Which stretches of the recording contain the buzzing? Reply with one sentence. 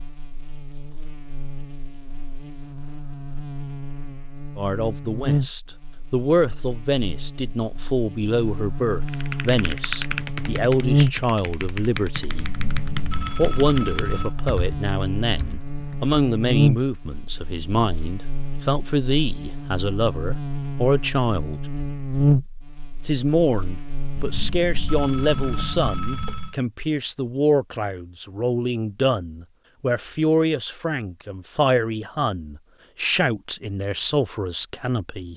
The buzzing can be heard from 0.0 to 25.9 s.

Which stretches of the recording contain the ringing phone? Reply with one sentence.
The ringing phone can be heard from 12.3 to 14.3 s and from 24.1 to 26.6 s.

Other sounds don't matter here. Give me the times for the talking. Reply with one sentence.
You can hear the talking from 4.5 to 12.5 s, from 13.3 to 21.6 s and from 23.0 to 35.3 s.